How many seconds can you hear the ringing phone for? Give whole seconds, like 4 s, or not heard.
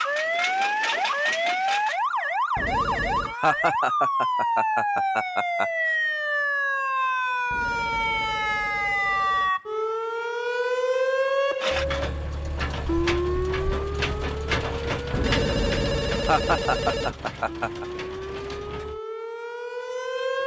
5 s.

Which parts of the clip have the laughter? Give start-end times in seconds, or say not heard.
3.4-5.7, 16.2-17.9.